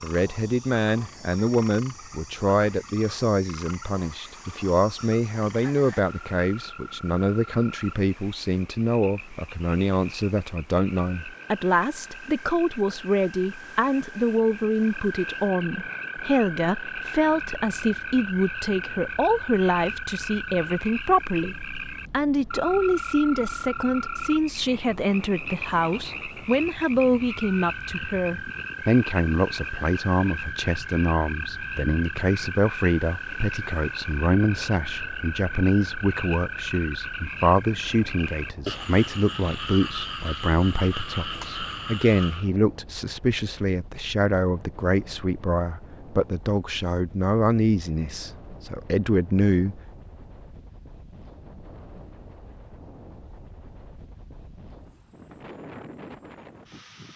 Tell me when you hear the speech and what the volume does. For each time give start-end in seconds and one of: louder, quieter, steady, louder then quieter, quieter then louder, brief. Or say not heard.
0.0-49.8 steady.